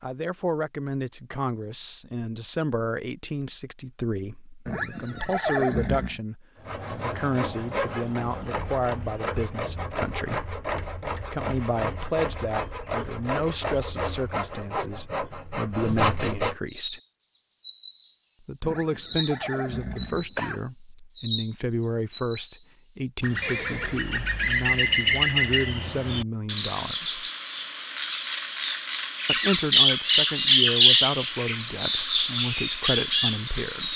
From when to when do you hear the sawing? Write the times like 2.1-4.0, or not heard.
6.5-16.6.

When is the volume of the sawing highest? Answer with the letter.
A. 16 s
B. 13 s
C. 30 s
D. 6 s
A.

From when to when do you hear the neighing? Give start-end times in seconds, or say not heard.
4.7-6.2, 18.6-20.6, 23.4-24.0.